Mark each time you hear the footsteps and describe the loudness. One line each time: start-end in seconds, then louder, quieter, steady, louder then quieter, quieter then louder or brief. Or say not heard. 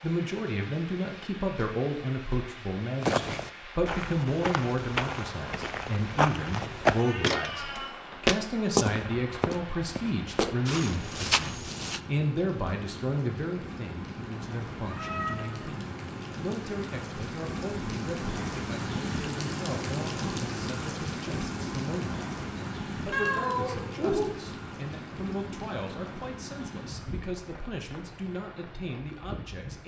3.0-12.0 louder then quieter.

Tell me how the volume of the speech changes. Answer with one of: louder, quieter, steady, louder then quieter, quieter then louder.
quieter.